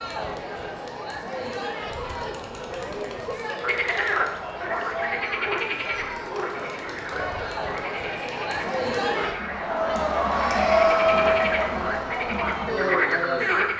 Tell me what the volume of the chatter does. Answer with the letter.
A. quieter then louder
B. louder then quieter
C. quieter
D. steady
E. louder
E.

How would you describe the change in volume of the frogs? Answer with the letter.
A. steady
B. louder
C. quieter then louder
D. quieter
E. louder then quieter
C.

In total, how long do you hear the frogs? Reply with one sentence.
The frogs can be heard for 10 seconds in total.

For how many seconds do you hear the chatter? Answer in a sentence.
The chatter can be heard for 14 seconds in total.